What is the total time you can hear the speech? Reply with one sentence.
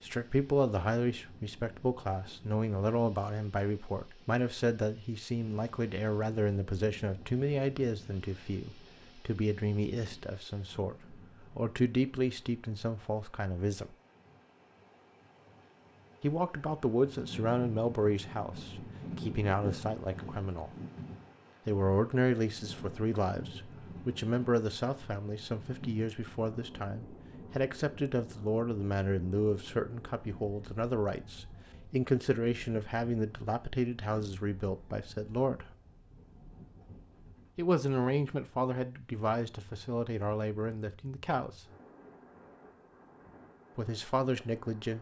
The speech can be heard for 38 seconds in total.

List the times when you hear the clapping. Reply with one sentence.
You can't hear the clapping here.